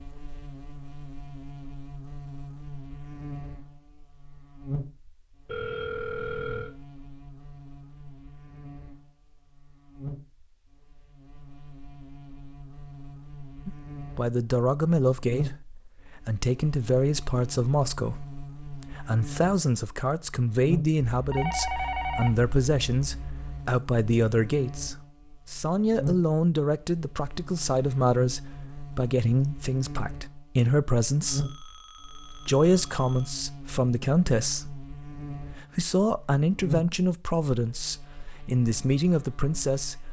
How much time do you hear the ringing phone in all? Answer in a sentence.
The ringing phone can be heard for 6 seconds in total.